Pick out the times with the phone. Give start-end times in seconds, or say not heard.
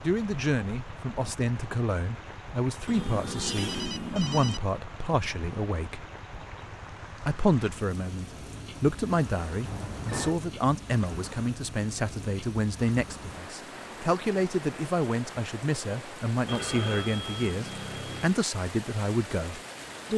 2.9-4.6, 9.7-10.4, 16.4-18.4.